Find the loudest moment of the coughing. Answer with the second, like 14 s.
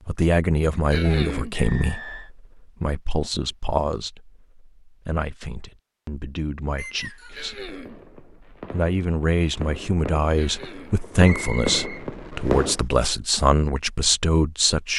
1 s.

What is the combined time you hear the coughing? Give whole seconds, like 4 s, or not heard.
2 s.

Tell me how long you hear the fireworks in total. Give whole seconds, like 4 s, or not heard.
5 s.